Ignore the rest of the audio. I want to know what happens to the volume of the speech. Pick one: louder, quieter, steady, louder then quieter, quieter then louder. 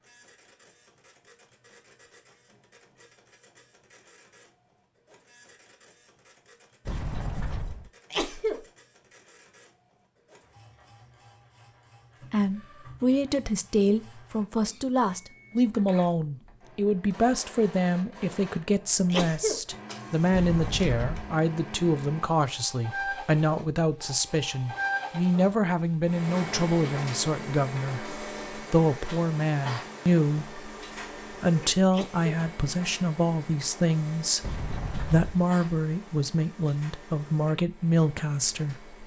steady.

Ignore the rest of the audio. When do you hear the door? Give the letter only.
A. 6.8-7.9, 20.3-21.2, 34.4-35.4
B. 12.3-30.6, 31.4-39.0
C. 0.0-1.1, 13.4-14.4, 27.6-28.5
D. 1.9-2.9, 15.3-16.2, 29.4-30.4
A.